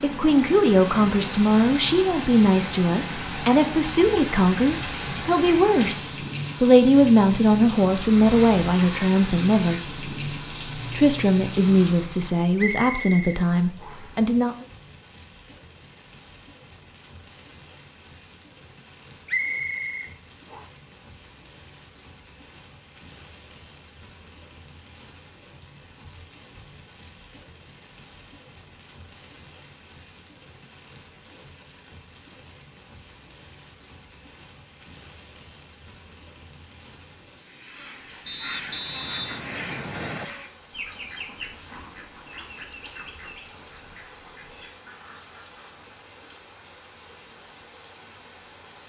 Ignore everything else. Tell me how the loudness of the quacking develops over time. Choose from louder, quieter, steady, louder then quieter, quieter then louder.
quieter.